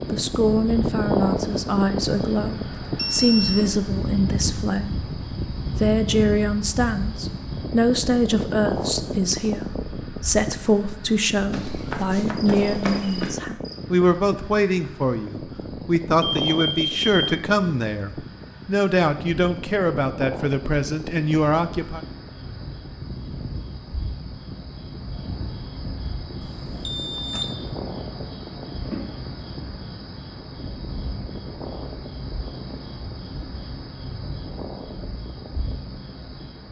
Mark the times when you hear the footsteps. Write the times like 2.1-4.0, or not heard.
11.5-13.3.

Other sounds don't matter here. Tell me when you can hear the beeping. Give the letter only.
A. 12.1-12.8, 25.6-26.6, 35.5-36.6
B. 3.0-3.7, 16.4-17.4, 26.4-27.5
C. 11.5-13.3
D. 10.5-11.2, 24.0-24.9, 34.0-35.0
B.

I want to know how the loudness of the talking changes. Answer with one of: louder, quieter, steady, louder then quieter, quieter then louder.
steady.